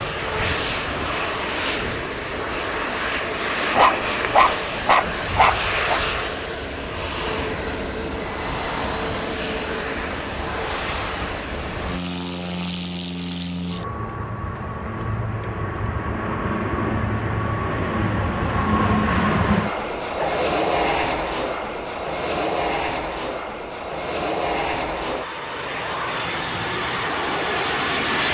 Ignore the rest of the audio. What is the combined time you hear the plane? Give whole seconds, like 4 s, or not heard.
28 s.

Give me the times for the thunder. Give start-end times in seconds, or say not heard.
not heard.